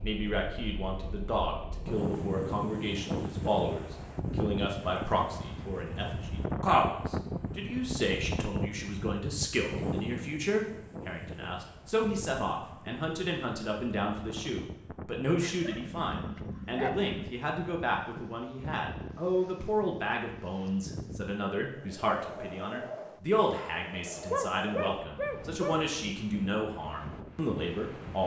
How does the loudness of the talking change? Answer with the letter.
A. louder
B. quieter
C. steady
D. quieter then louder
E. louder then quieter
C.